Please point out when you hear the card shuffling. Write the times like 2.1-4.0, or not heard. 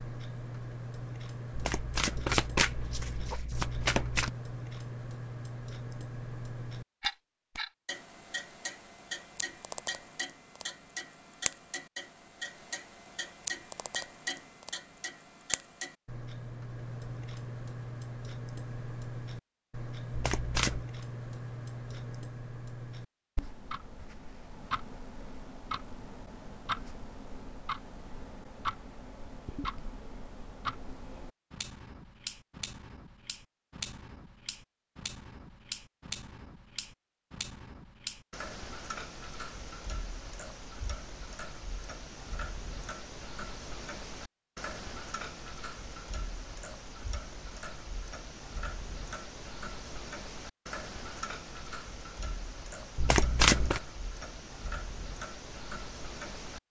1.5-4.3, 20.1-20.9, 53.0-53.8.